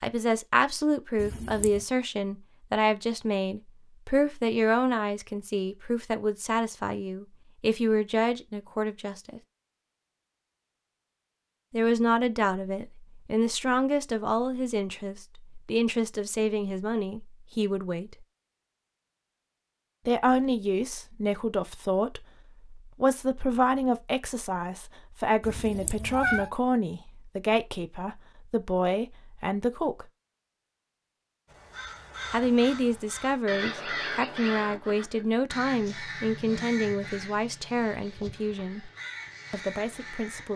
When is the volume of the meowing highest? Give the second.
26 s.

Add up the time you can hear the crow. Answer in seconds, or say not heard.
9 s.